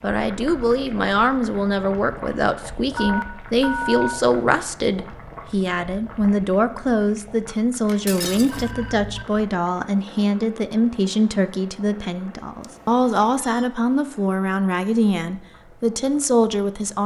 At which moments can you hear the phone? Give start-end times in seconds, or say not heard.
3.0-4.2, 7.8-9.2, 12.6-13.7.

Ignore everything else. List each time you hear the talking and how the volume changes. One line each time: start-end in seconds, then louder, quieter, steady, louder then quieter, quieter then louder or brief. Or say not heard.
0.0-17.0 steady.